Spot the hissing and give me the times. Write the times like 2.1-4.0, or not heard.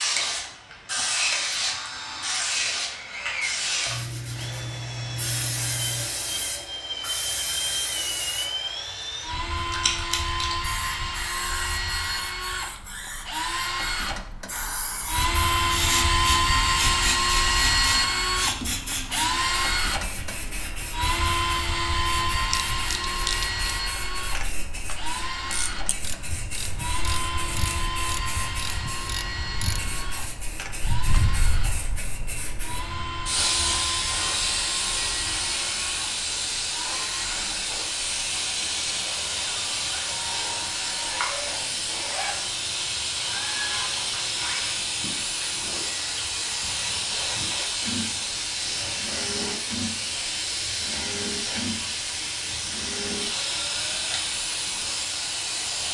0.0-55.9.